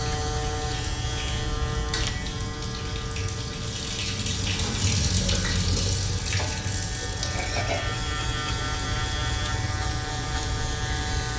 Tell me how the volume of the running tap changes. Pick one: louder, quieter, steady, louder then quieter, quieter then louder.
louder then quieter.